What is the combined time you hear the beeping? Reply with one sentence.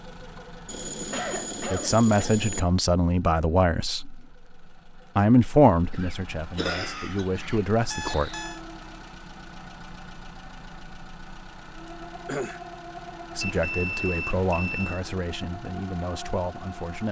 The beeping can be heard for 4 seconds in total.